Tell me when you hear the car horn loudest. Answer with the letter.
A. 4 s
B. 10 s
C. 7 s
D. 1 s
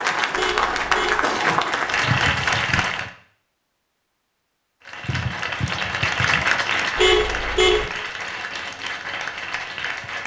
C.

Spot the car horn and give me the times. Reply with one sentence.
You can hear the car horn from 0.3 to 1.2 s and from 7.0 to 7.8 s.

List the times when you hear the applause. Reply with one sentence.
The applause can be heard from 0.0 to 3.1 s and from 4.8 to 10.2 s.